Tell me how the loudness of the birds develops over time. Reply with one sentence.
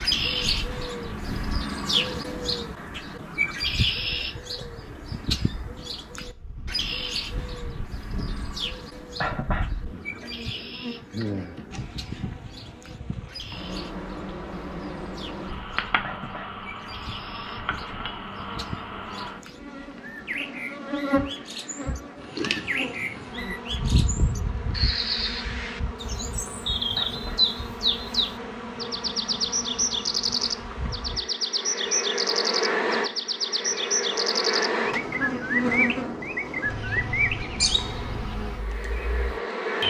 The volume of the birds goes down, then up.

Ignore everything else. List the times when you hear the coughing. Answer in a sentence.
The coughing can be heard from 9.2 to 9.7 s, from 16.0 to 16.6 s and from 26.9 to 27.4 s.